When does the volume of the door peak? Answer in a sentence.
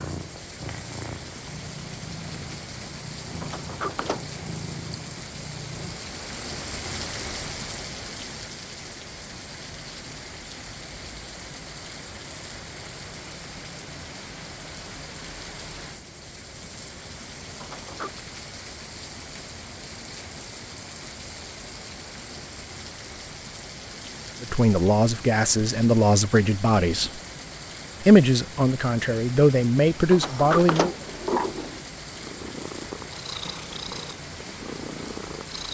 The loudest moment of the door is at 31 seconds.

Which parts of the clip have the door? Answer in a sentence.
You can hear the door from 3.4 to 4.4 s, from 17.6 to 18.2 s and from 30.1 to 31.8 s.